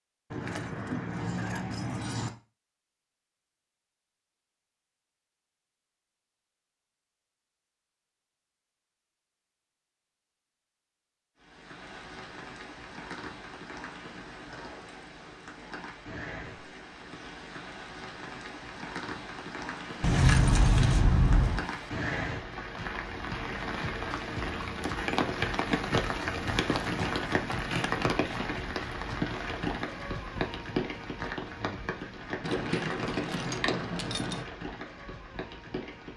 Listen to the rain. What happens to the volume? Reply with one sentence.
The volume of the rain goes up, then down.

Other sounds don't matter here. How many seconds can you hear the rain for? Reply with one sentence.
The rain can be heard for 25 seconds in total.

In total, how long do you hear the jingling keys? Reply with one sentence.
The jingling keys can be heard for 6 seconds in total.